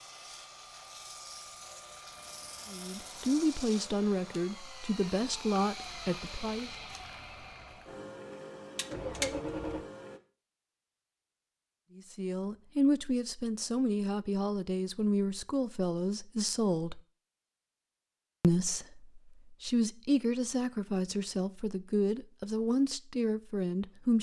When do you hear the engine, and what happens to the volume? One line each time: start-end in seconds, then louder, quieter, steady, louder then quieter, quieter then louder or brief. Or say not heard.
0.0-10.2 louder.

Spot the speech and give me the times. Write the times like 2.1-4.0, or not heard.
2.7-6.7, 11.9-17.0, 18.4-24.1.